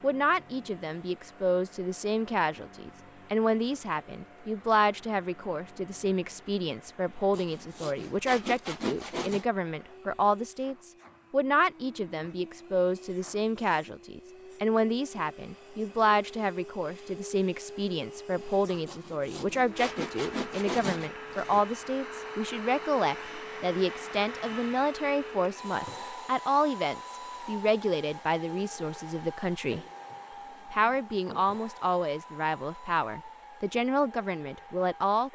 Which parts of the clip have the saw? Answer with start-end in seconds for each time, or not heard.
7.3-9.4, 18.9-21.6.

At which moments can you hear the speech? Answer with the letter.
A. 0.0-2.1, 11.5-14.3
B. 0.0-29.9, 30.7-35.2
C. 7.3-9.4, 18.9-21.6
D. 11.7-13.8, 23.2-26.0
B.